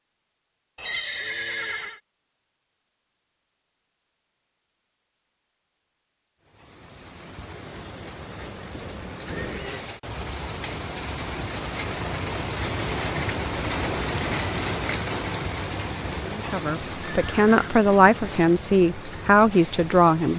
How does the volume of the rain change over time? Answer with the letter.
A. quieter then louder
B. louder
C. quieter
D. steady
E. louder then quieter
E.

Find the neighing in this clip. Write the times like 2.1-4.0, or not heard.
0.8-2.0, 8.7-9.8, 17.0-18.4.